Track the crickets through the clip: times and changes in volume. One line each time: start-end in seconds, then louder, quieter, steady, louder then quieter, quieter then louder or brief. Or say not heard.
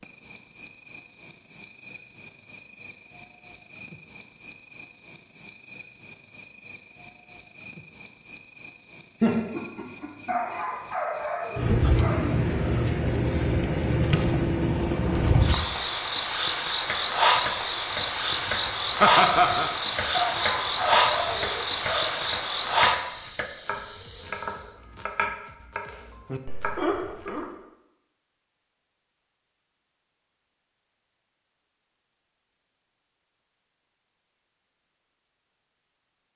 0.0-24.8 steady.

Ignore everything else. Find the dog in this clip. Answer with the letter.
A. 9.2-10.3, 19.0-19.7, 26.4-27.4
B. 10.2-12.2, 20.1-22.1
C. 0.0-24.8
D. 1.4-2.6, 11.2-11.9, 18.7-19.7
B.